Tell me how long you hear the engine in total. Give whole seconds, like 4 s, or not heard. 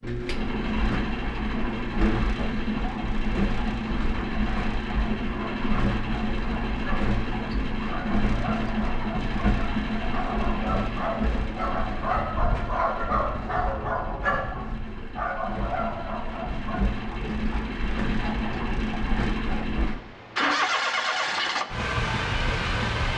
23 s.